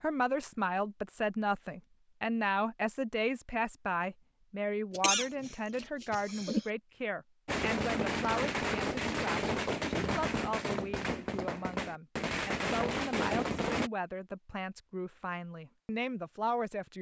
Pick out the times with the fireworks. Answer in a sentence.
The fireworks can be heard from 7.5 to 13.9 s.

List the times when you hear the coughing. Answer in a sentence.
The coughing can be heard from 4.9 to 6.7 s.